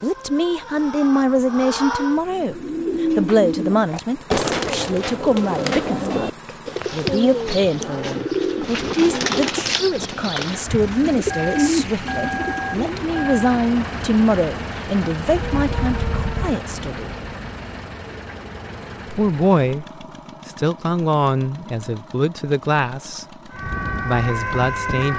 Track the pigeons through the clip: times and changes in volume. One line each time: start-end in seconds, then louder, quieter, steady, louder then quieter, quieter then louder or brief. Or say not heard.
2.2-13.0 steady.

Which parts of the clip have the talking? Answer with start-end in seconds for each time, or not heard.
0.0-17.1, 19.1-23.2, 24.1-25.1.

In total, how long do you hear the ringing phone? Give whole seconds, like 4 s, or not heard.
2 s.